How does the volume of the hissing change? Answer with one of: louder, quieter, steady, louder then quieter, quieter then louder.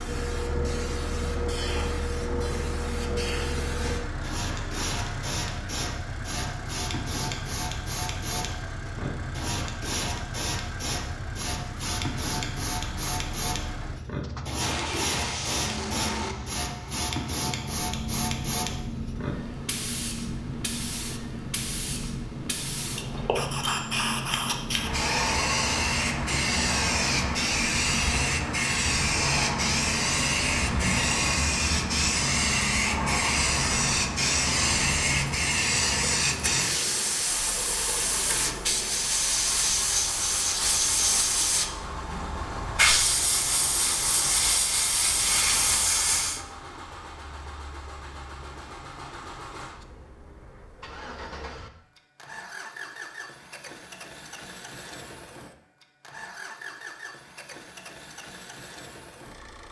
louder.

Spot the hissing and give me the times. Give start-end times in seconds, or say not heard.
0.0-46.4.